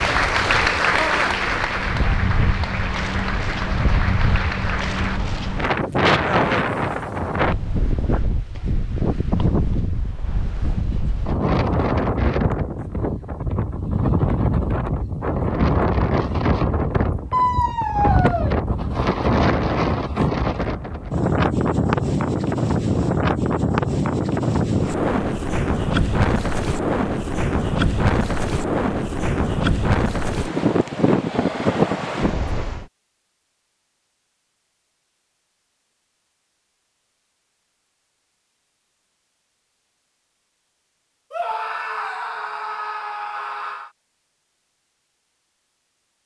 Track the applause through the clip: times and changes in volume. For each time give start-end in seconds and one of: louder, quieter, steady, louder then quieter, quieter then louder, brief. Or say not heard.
0.0-5.2 quieter.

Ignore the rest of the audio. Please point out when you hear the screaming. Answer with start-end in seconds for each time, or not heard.
0.9-1.3, 17.3-18.6, 41.3-43.9.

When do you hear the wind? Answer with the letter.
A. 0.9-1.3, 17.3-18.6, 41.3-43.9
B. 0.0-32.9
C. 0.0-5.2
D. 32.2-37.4
B.